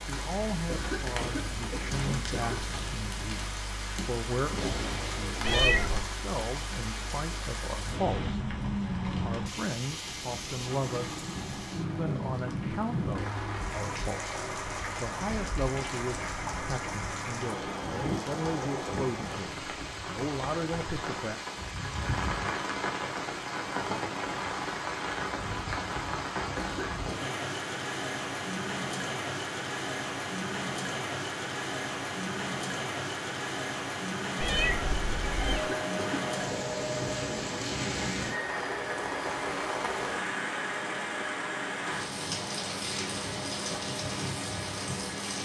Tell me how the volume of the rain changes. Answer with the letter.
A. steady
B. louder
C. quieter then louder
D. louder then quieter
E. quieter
A.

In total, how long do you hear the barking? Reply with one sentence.
You can't hear the barking here.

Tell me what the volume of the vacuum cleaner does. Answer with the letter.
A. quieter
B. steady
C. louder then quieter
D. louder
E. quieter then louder
A.